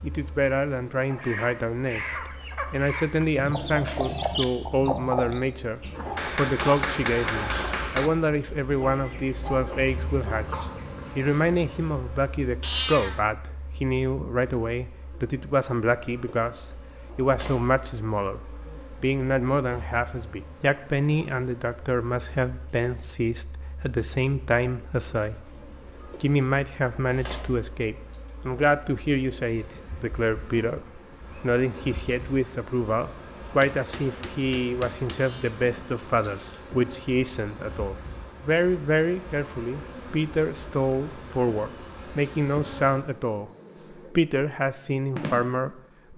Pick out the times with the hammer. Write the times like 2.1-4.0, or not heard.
6.2-8.1, 33.6-35.3.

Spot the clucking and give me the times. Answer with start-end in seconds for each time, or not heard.
0.9-11.3.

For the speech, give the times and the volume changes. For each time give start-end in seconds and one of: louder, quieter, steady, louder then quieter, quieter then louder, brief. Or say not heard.
0.0-25.5 steady
26.2-46.1 steady.